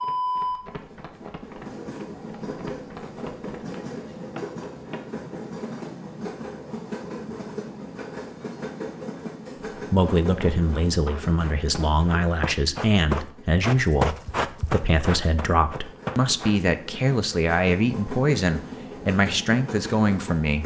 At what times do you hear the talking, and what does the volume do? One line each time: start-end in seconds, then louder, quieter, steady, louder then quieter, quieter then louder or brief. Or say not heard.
9.9-20.6 steady.